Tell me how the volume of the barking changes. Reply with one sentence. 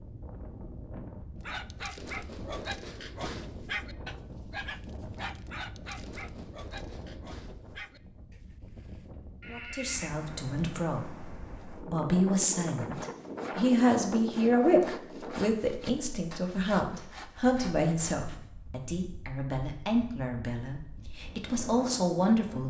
The volume of the barking goes down.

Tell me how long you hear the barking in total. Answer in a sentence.
The barking can be heard for 8 seconds in total.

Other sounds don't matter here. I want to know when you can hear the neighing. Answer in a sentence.
The neighing can be heard from 9.4 to 10.2 s.